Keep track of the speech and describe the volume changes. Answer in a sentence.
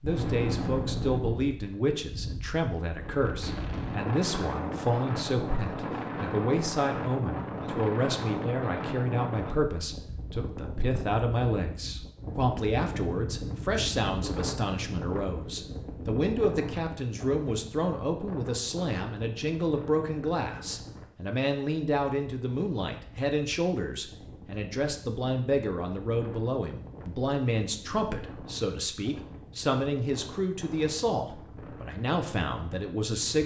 The volume of the speech stays about the same.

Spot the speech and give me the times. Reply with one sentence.
You can hear the speech from 0.0 to 33.4 s.